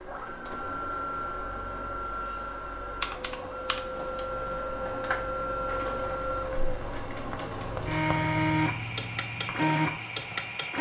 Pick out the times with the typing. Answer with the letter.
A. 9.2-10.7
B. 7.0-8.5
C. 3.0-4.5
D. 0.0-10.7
C.